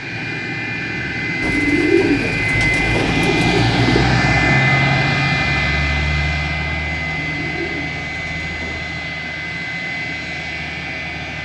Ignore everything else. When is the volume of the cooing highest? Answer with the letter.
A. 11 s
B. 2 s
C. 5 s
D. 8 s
B.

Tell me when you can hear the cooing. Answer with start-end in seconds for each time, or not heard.
1.4-4.0, 7.0-8.8.